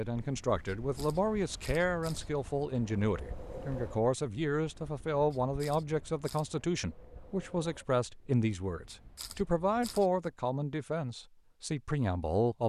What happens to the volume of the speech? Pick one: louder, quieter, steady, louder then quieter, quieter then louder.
steady.